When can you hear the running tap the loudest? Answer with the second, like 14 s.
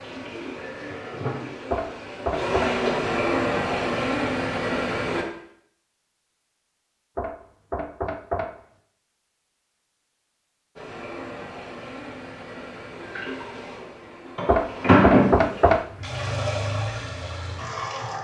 15 s.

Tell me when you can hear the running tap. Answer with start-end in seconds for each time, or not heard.
0.0-5.2, 10.8-18.2.